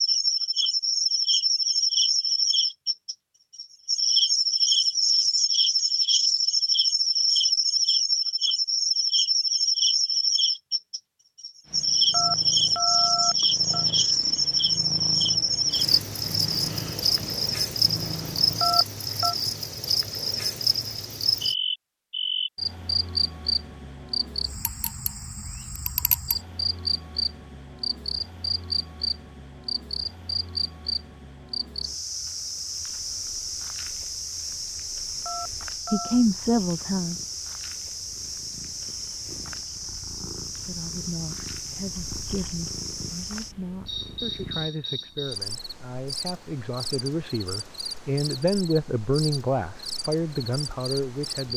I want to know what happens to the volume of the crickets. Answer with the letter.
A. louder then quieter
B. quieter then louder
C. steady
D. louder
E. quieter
E.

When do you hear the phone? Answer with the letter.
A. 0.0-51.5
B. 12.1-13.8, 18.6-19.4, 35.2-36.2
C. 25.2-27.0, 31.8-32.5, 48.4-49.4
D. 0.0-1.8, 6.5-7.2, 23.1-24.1
B.